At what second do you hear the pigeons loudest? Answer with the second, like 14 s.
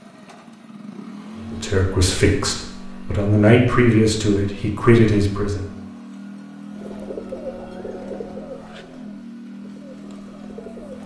7 s.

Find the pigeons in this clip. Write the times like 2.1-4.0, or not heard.
6.8-11.0.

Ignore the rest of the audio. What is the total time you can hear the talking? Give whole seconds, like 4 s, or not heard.
4 s.